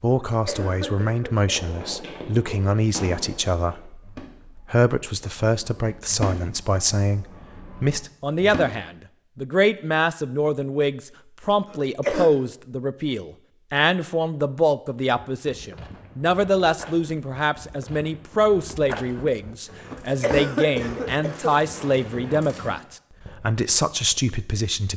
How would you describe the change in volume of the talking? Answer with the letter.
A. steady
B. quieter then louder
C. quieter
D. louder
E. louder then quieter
A.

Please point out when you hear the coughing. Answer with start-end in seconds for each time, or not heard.
0.1-1.8, 11.7-12.3, 19.9-21.6.